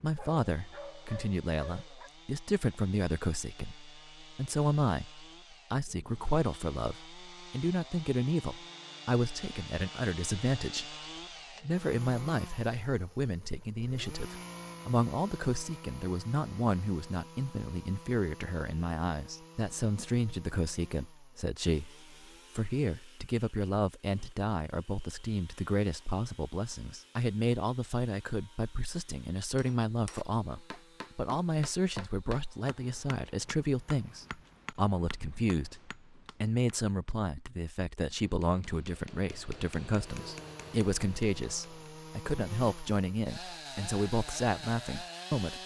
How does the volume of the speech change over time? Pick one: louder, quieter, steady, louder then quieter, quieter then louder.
steady.